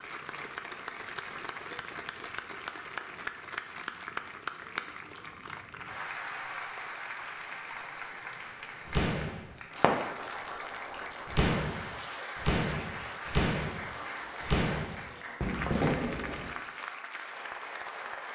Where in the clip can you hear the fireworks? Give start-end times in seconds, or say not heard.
8.8-9.9, 11.2-16.5.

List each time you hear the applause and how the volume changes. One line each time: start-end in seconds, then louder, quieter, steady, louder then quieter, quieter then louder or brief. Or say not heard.
0.0-18.3 steady.